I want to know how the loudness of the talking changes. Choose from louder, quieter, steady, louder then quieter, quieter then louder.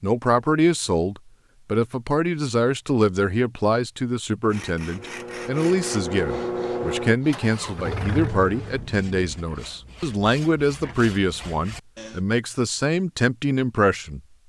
steady.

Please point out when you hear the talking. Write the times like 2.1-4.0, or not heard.
0.0-14.2.